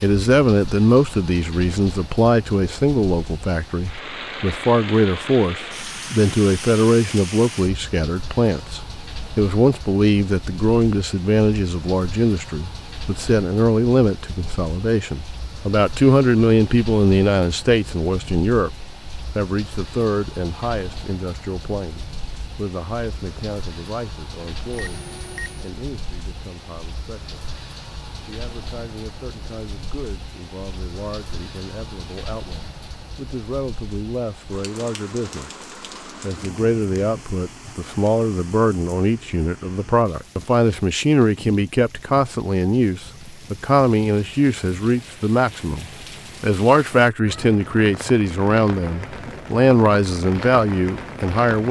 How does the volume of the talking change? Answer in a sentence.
The volume of the talking goes down, then up.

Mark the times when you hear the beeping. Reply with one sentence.
The beeping can be heard from 24.7 to 25.7 s.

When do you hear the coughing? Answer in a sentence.
You can't hear the coughing here.